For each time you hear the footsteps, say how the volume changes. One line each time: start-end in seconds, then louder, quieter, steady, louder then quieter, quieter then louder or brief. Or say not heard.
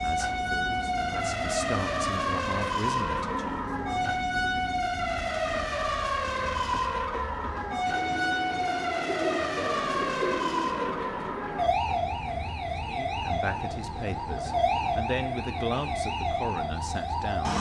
not heard.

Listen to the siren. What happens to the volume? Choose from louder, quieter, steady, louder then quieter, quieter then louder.
steady.